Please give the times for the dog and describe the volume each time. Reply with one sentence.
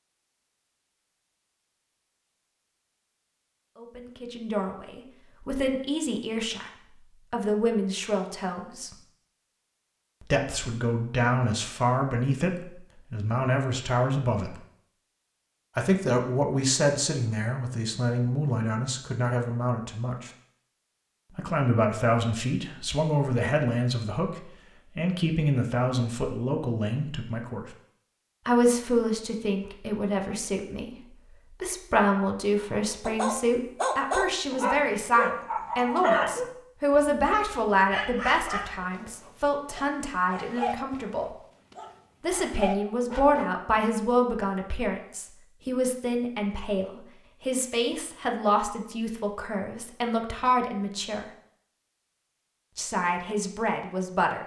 The dog can be heard from 33.0 to 43.5 s, getting quieter.